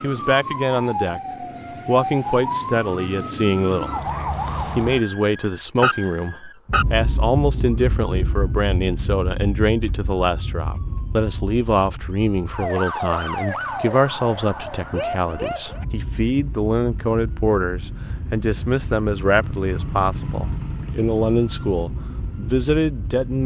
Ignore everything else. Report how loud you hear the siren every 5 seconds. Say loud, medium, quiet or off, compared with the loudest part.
loud, loud, loud, medium, medium.